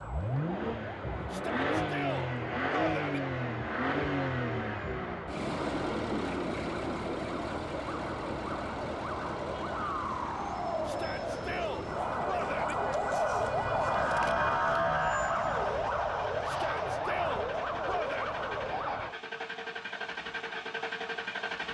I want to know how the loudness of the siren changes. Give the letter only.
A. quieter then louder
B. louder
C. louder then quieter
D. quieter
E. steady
B.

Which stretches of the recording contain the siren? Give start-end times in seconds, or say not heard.
0.0-19.1.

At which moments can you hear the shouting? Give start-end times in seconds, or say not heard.
1.3-3.2, 10.8-12.8, 16.4-18.4.